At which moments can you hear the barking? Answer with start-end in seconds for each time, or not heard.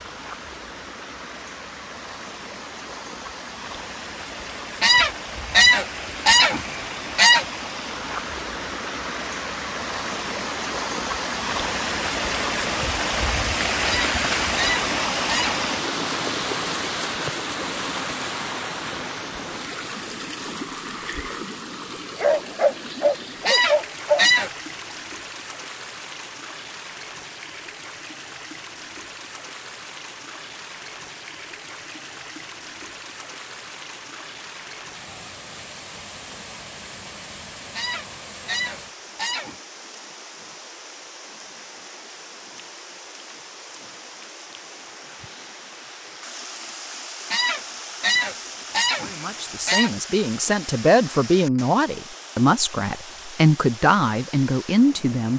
22.1-24.2.